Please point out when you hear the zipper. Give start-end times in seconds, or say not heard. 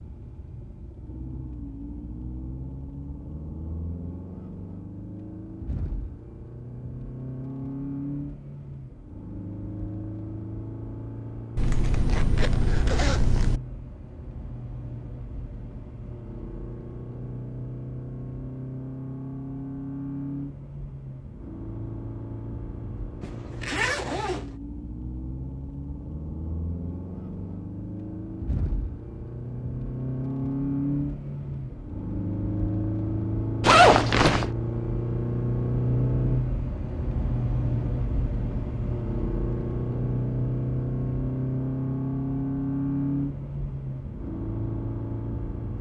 11.6-13.6, 23.2-24.5, 33.6-34.5.